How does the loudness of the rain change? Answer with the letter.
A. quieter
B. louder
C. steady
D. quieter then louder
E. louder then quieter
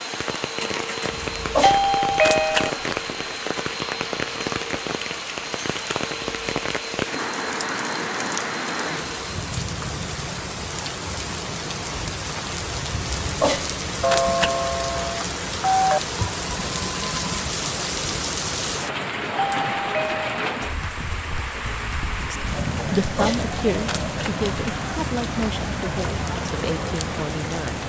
C.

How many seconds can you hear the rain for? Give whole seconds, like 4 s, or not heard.
28 s.